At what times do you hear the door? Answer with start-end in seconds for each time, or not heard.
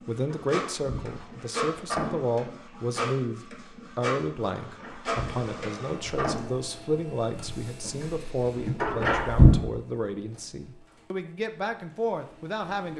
0.3-2.4, 4.6-6.6, 8.8-9.6.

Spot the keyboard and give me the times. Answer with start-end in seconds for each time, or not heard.
not heard.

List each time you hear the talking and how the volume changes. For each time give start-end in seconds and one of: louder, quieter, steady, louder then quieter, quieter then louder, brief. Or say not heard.
0.1-12.9 steady.